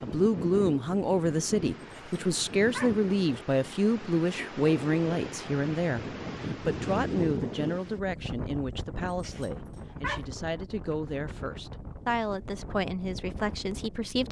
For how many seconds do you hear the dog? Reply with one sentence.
The dog can be heard for 2 seconds in total.